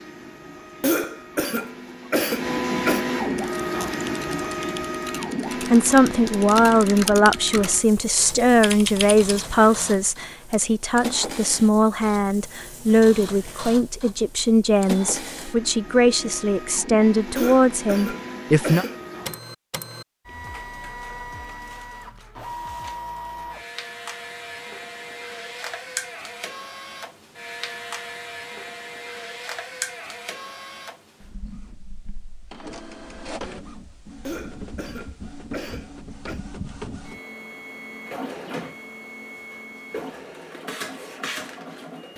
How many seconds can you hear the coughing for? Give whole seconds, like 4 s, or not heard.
6 s.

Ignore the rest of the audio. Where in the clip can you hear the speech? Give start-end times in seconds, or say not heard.
5.6-18.9.